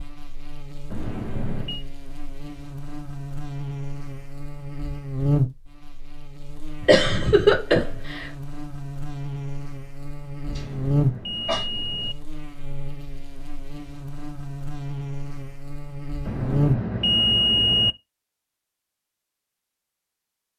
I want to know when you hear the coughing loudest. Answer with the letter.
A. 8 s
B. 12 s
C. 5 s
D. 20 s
A.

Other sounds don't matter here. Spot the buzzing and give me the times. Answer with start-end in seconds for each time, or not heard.
0.0-16.8.